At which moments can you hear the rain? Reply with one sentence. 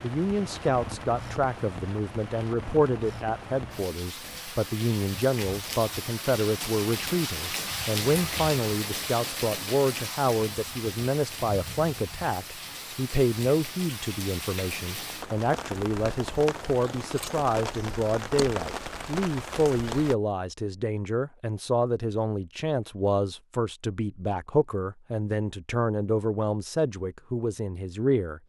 You can hear the rain from 0.0 to 20.1 s.